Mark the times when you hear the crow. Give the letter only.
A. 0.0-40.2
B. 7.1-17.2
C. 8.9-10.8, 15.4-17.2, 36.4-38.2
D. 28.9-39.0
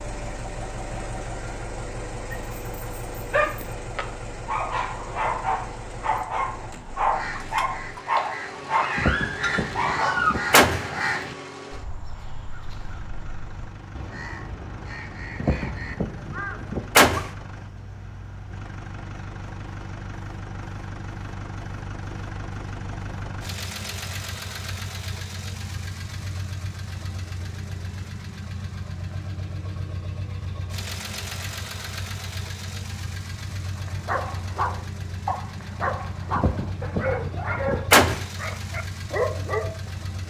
B.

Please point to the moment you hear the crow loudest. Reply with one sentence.
The volume of the crow peaks at 11 seconds.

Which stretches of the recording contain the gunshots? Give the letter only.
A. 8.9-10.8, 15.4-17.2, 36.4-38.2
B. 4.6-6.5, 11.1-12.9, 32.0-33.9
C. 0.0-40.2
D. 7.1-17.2
A.